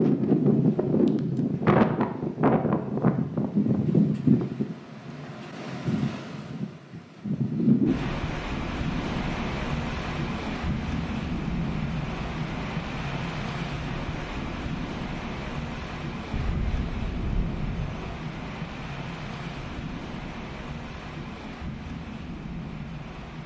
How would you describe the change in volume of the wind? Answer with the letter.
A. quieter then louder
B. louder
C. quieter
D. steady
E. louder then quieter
C.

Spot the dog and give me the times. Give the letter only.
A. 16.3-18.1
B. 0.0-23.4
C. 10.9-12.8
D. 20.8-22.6
A.